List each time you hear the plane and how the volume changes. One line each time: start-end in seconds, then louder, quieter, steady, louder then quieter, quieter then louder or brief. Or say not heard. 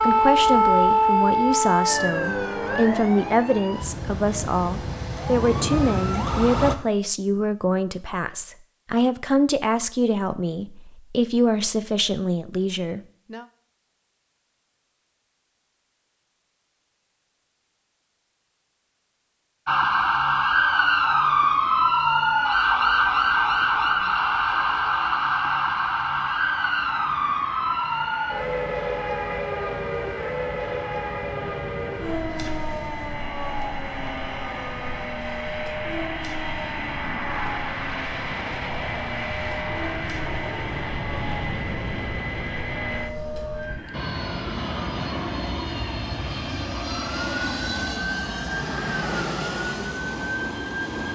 22.9-51.1 louder.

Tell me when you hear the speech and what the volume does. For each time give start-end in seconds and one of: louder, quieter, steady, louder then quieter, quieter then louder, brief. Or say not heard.
0.0-13.4 steady.